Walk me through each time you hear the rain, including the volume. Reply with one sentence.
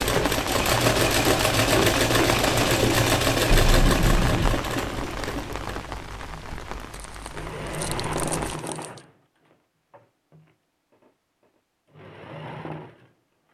You can hear the rain from 0.0 to 8.6 s, getting quieter.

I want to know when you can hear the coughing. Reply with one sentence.
The coughing can be heard from 3.5 to 4.6 s.